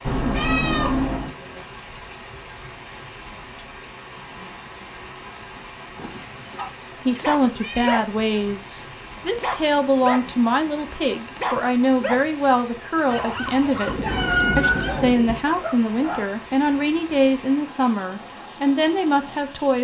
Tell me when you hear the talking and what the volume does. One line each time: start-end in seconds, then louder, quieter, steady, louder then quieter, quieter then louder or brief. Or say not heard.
6.8-19.7 steady.